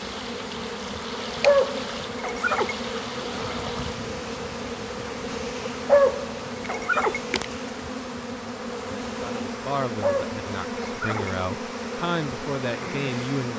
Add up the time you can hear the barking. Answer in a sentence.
The barking can be heard for 4 seconds in total.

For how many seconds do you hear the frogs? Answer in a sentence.
The frogs can't be heard in this clip.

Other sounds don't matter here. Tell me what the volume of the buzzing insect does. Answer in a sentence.
The volume of the buzzing insect stays about the same.